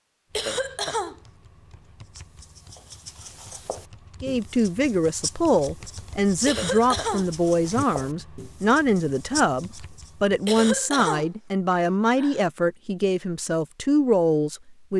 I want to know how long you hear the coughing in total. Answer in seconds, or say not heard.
4 s.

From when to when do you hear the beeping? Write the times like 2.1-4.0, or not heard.
not heard.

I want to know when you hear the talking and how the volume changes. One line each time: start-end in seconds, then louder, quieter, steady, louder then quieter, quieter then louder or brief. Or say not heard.
4.2-14.9 steady.